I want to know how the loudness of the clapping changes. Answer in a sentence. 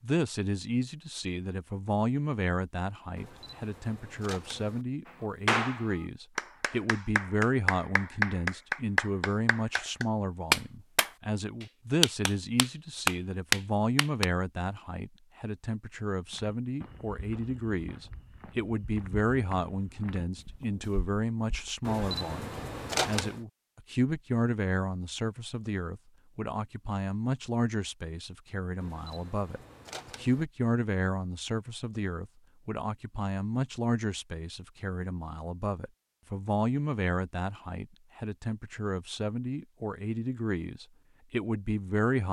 The loudness of the clapping goes up.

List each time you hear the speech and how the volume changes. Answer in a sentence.
You can hear the speech from 0.0 to 42.2 s, at a steady volume.